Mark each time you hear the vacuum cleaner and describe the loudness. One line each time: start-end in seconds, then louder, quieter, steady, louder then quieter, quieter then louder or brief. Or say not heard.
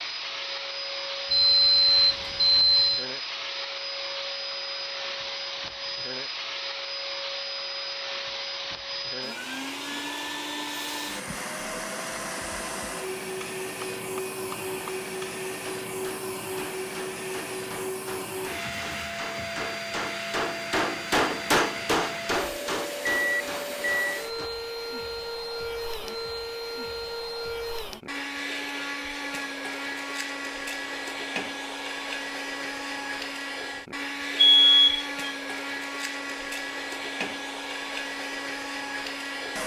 0.0-39.6 steady.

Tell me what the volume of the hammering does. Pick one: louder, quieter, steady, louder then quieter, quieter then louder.
louder then quieter.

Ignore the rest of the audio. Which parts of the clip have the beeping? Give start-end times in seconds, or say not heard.
1.3-3.0, 23.1-24.2, 34.4-35.0.